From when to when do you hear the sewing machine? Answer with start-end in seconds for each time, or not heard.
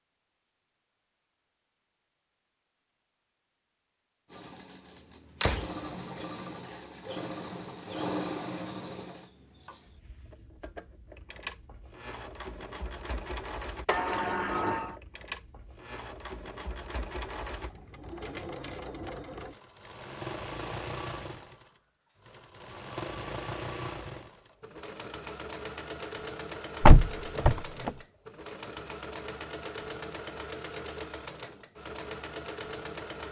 4.3-33.2.